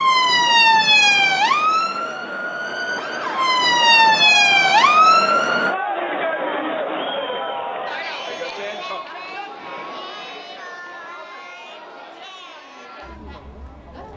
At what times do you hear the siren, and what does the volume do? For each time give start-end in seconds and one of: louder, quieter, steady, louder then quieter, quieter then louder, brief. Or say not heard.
0.0-5.8 quieter then louder.